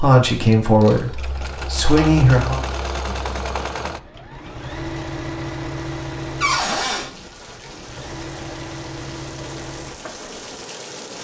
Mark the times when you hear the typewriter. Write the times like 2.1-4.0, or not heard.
not heard.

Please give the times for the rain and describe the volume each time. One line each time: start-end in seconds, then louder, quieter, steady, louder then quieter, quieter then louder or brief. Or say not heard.
4.3-11.1 louder.